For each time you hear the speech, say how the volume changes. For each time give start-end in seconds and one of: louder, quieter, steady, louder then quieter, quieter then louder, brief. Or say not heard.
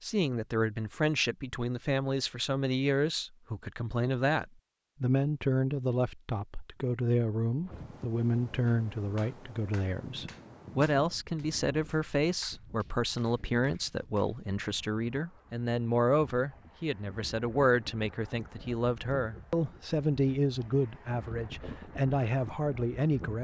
0.0-23.3 steady.